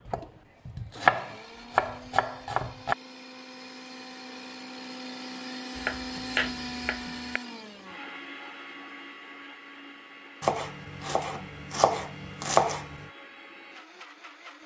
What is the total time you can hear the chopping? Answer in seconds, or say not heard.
7 s.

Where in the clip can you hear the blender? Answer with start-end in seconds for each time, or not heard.
0.0-14.6.